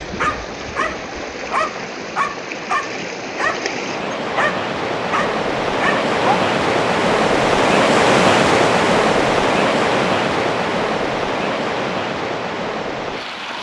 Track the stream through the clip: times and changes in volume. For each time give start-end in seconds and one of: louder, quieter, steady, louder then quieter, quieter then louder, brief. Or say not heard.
0.0-13.5 louder then quieter.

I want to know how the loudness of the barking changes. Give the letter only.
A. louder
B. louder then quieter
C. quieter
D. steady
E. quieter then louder
D.